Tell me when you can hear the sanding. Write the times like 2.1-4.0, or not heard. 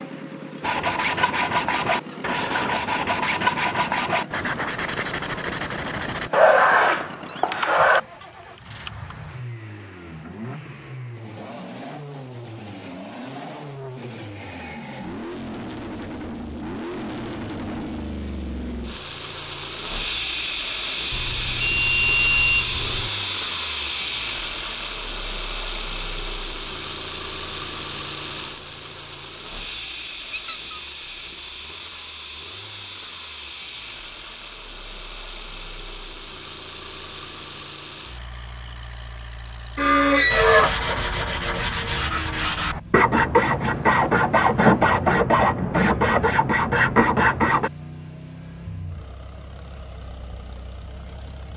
0.6-8.0, 40.3-47.7.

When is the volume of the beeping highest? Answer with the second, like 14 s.
22 s.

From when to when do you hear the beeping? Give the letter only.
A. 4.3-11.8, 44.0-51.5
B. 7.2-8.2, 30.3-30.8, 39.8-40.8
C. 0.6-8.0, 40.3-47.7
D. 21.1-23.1
D.